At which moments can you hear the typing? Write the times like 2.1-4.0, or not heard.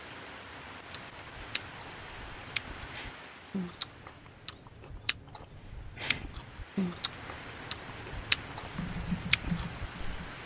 8.8-10.4.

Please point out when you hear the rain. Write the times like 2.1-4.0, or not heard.
0.0-10.4.